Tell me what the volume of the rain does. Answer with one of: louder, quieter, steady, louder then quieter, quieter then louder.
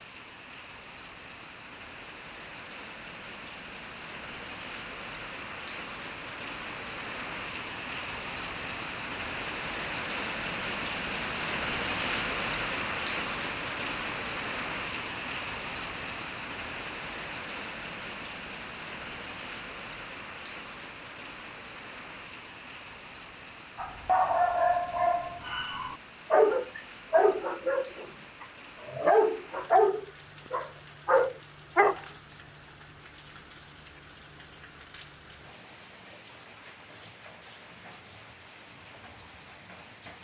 louder then quieter.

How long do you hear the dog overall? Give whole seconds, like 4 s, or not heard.
8 s.